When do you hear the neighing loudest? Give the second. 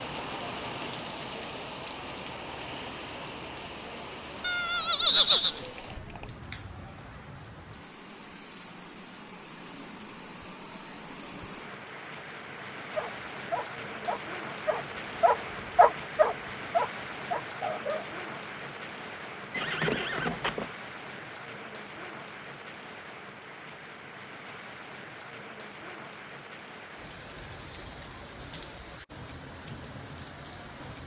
5 s.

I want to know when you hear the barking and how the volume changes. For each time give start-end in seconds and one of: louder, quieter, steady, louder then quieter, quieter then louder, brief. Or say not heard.
12.9-18.1 louder then quieter.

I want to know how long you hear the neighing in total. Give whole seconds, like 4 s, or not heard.
3 s.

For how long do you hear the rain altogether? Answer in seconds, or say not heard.
31 s.